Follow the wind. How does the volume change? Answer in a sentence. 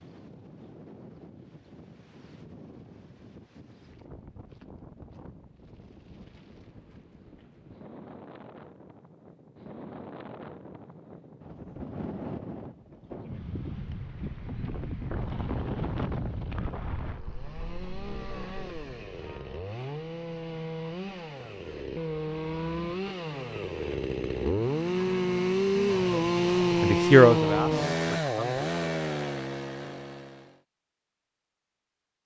The loudness of the wind goes up.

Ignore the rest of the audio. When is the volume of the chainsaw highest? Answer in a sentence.
The loudest moment of the chainsaw is at 27 seconds.